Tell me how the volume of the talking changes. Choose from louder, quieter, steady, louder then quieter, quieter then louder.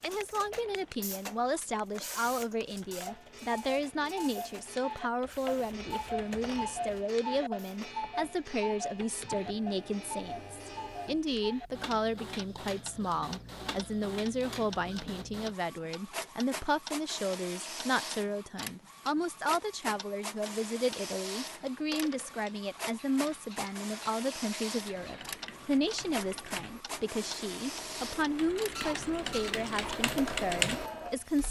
steady.